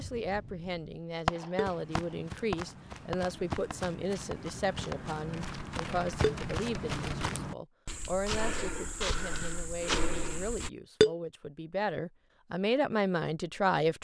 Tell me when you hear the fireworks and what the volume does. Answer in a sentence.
You can hear the fireworks from 0.0 to 7.3 s, getting quieter.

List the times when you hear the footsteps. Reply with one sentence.
You can hear the footsteps from 1.6 to 10.7 s.